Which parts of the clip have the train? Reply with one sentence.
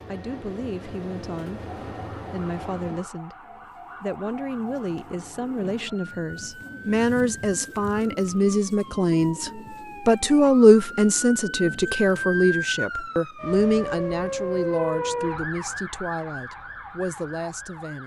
You can hear the train from 0.0 to 3.1 s.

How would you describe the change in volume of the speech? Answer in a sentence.
The volume of the speech goes up, then down.